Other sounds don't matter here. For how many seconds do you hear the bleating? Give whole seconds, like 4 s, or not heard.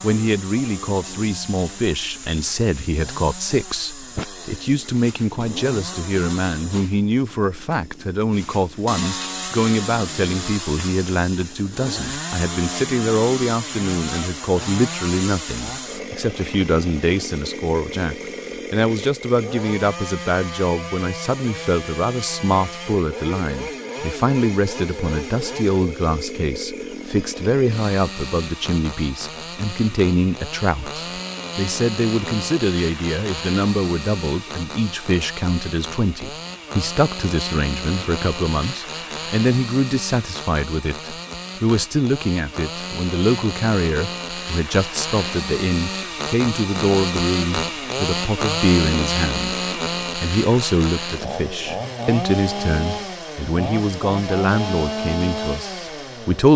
not heard.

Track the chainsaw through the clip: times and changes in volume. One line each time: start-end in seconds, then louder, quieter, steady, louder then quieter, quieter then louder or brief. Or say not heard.
0.0-56.5 louder.